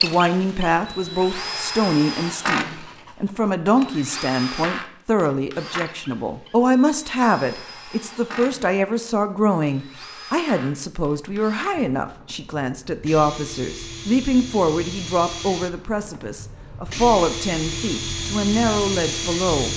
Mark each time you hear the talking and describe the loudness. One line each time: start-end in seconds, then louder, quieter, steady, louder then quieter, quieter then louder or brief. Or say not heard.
0.0-19.7 steady.